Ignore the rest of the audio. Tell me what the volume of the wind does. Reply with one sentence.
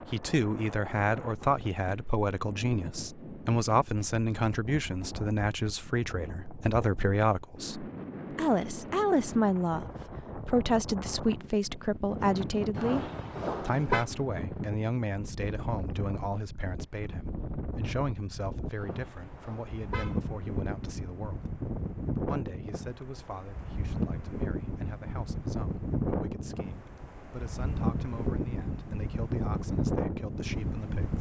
The loudness of the wind goes up.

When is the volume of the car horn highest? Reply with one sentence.
The volume of the car horn peaks at 14 seconds.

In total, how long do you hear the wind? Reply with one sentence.
You can hear the wind for 31 seconds altogether.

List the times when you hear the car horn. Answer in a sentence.
You can hear the car horn from 12.7 to 14.1 s and from 18.8 to 20.2 s.